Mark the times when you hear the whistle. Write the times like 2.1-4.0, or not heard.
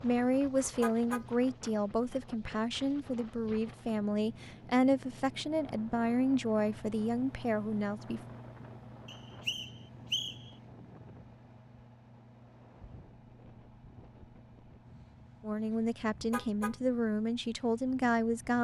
9.1-10.5.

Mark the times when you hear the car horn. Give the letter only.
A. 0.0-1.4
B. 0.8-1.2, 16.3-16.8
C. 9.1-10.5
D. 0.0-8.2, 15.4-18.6
B.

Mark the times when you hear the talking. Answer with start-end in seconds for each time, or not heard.
0.0-8.2, 15.4-18.6.